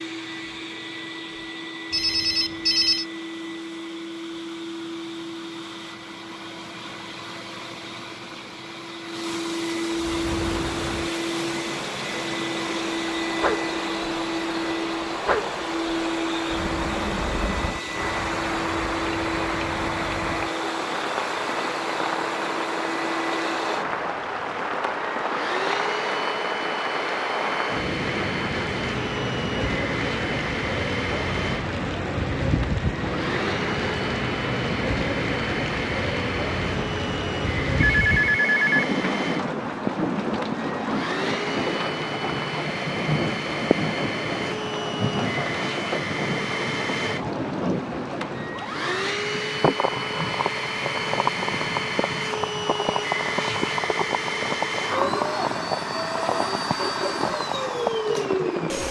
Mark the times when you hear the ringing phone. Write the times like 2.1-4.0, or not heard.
1.9-3.0, 37.9-38.9.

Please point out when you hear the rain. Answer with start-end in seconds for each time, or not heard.
9.9-58.8.